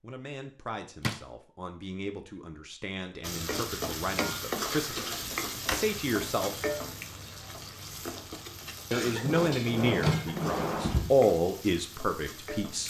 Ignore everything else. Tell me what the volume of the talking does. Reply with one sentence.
The volume of the talking goes up.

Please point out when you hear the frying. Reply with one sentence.
The frying can be heard from 3.2 to 12.8 s.